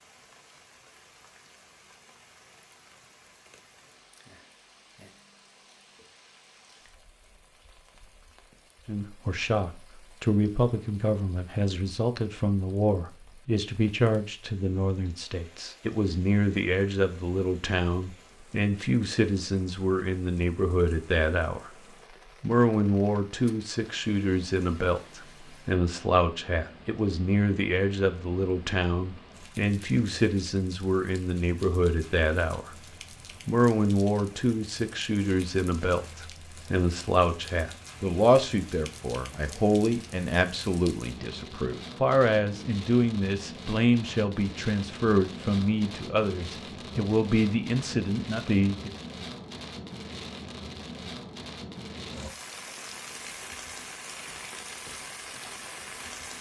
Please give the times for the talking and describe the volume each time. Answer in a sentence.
The talking can be heard from 8.8 to 21.7 s, at a steady volume; from 22.4 to 32.8 s, at a steady volume; and from 33.5 to 48.9 s, at a steady volume.